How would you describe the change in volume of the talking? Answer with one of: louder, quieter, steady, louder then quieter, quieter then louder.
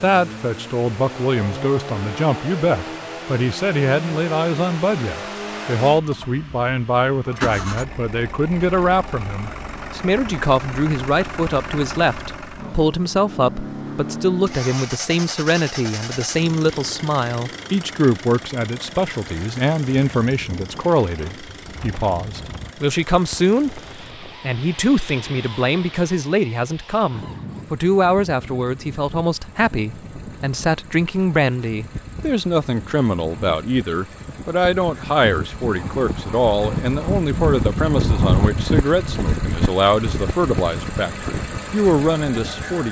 steady.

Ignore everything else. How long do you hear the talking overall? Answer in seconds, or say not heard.
43 s.